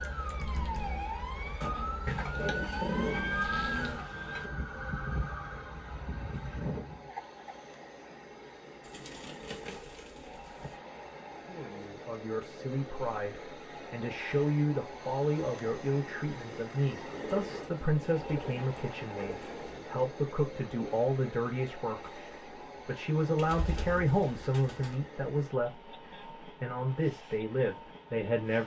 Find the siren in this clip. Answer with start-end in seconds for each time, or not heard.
0.0-7.1.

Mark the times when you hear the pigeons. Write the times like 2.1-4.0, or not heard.
2.0-4.5, 8.8-10.8, 17.1-19.9, 23.4-24.9.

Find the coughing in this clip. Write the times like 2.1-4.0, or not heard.
7.0-7.6.